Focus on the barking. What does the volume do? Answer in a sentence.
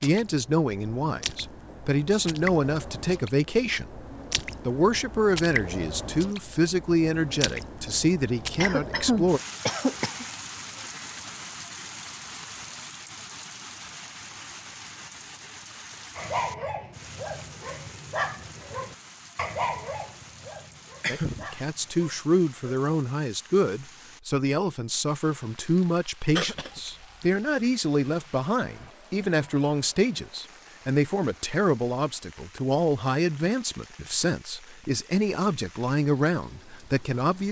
The loudness of the barking goes up, then down.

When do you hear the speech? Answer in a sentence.
The speech can be heard from 0.0 to 4.0 s, from 4.7 to 9.4 s and from 21.1 to 37.4 s.